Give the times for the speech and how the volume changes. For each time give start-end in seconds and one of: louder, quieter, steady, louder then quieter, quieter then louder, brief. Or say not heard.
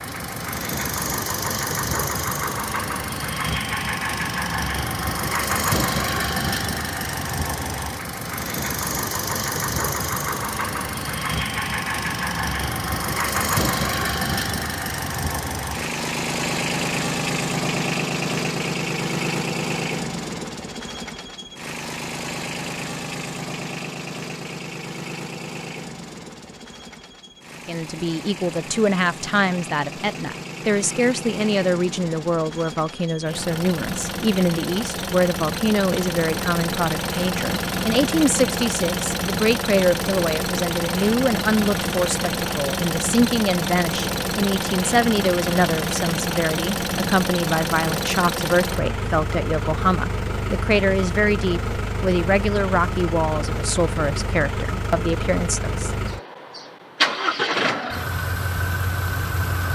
27.6-55.9 steady.